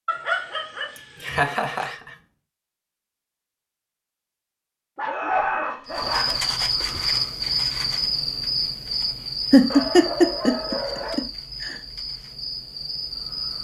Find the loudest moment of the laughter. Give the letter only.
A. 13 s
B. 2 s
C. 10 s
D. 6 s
C.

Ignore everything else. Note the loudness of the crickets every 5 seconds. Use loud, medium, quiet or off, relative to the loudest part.
off, loud, medium.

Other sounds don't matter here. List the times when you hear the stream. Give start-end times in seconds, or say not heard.
not heard.